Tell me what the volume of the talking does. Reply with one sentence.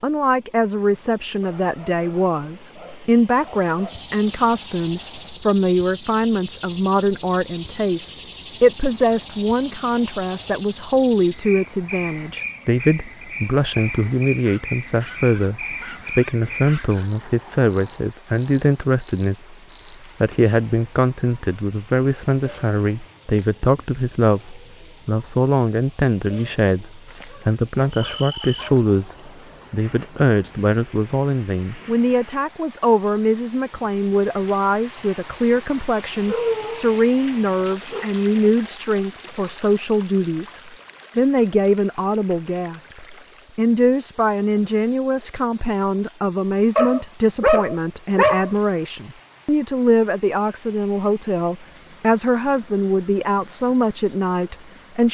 The volume of the talking stays about the same.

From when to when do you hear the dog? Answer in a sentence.
The dog can be heard from 1.4 to 4.0 s, from 14.4 to 17.2 s, from 27.1 to 28.9 s, from 36.2 to 38.1 s and from 46.8 to 48.5 s.